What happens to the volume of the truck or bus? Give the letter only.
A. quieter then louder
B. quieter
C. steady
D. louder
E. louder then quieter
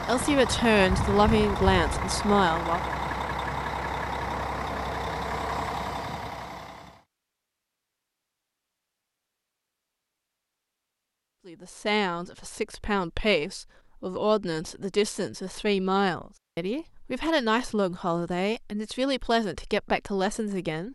C.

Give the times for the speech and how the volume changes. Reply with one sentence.
You can hear the speech briefly from 0.1 to 2.8 s; and from 11.4 to 20.9 s, at a steady volume.